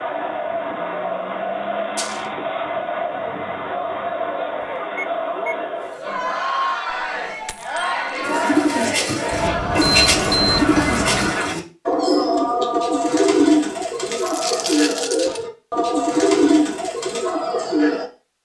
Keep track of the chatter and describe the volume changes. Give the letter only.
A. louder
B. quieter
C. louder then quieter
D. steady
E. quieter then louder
D.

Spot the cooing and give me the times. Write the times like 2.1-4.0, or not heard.
8.2-18.1.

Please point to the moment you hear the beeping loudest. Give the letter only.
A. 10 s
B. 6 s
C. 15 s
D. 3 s
A.